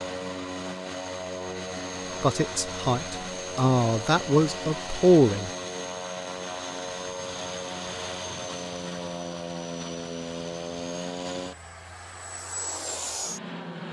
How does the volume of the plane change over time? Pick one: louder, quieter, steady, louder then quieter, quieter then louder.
steady.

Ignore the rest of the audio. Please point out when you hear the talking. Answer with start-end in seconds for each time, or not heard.
2.2-5.5.